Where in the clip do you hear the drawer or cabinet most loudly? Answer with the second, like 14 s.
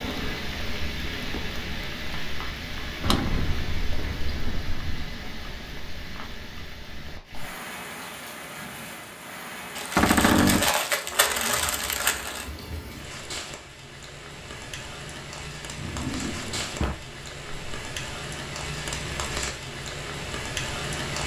10 s.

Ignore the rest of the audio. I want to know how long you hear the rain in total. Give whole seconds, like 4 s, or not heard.
21 s.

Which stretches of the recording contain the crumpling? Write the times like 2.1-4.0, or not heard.
9.8-12.5.